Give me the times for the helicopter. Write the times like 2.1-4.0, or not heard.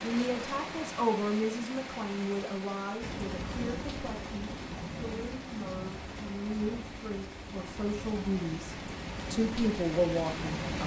3.0-10.8.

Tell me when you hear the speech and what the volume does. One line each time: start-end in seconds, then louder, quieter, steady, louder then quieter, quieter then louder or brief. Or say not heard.
0.0-10.8 quieter then louder.